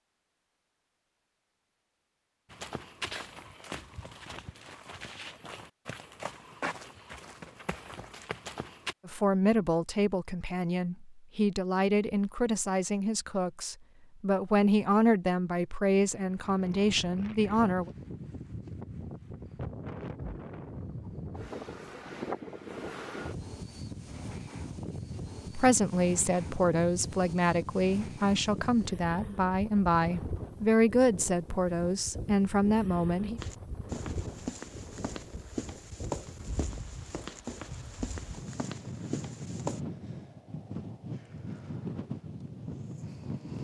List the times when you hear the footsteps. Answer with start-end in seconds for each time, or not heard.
2.5-8.9, 33.4-39.8.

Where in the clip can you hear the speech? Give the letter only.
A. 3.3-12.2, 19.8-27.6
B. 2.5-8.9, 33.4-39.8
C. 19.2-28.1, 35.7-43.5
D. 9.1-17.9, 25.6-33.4
D.